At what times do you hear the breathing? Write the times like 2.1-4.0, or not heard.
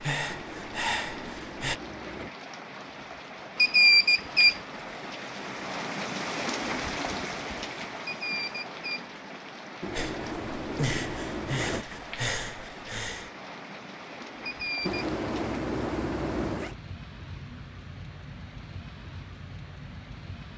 0.0-1.8, 9.9-13.3.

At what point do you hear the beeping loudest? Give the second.
4 s.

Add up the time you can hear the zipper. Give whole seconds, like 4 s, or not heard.
6 s.